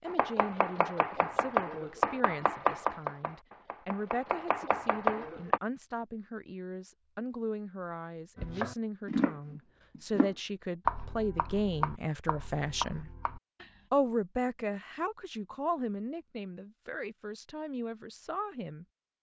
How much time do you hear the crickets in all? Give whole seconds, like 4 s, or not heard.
not heard.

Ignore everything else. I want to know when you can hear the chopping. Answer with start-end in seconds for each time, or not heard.
0.1-5.6, 8.3-13.8.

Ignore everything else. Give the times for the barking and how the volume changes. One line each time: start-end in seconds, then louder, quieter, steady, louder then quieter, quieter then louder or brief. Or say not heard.
not heard.